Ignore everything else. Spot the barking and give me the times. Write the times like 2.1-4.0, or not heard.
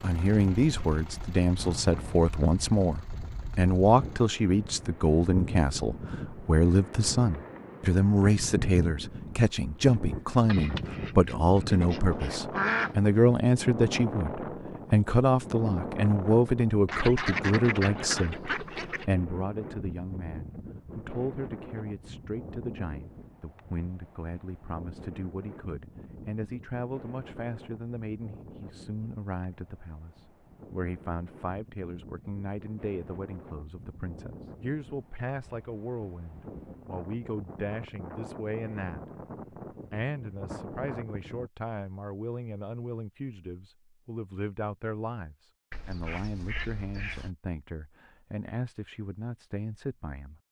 not heard.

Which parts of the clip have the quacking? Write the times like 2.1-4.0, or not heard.
10.4-12.9, 16.9-19.1, 45.7-47.3.